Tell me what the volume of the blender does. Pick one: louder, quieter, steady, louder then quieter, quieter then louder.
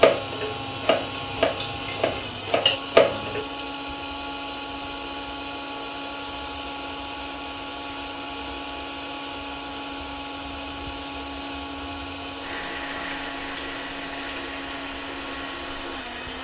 steady.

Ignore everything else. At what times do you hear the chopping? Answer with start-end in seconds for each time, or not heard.
not heard.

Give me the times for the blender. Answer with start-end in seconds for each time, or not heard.
0.0-16.3.